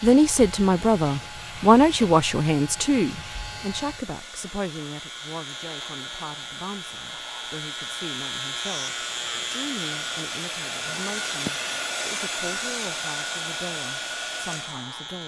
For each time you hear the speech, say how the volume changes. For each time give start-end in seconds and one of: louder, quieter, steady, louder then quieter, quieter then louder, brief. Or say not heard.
0.0-15.2 quieter.